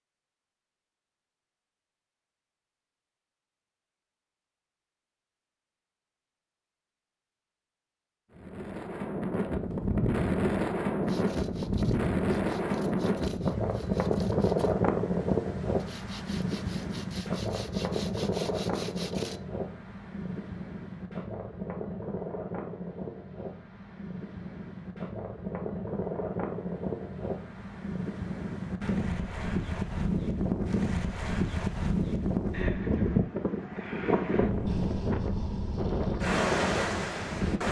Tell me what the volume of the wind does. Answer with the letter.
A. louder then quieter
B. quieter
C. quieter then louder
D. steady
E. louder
C.